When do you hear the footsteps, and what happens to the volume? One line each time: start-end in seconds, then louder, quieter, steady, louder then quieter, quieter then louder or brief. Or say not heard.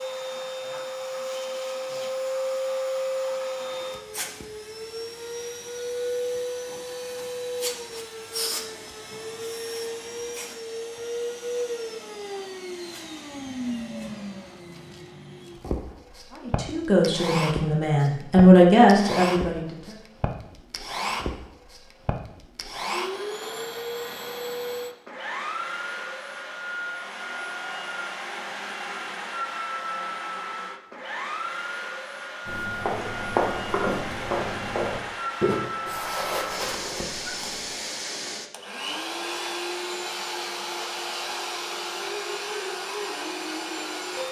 32.5-37.8 quieter.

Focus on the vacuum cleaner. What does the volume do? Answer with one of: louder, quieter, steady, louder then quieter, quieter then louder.
steady.